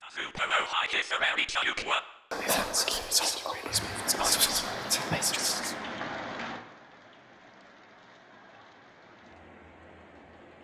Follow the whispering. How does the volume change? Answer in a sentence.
The volume of the whispering stays about the same.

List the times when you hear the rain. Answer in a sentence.
The rain can be heard from 3.6 to 10.5 s.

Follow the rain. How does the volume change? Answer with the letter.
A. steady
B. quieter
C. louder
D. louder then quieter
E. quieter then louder
B.